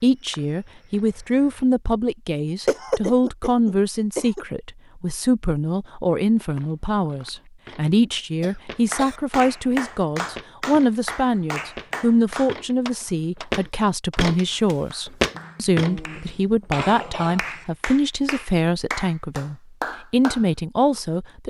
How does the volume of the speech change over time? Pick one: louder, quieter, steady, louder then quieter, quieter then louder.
steady.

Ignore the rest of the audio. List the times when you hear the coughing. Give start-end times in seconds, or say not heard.
2.6-4.5, 8.4-9.2, 15.3-17.6.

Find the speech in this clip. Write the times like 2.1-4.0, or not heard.
0.0-21.4.